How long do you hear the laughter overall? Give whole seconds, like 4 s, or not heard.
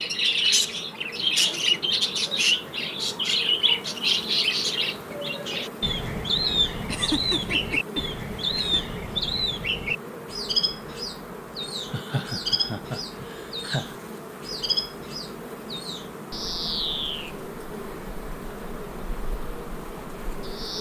4 s.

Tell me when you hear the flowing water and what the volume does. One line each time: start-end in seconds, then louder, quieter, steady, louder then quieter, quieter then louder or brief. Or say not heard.
not heard.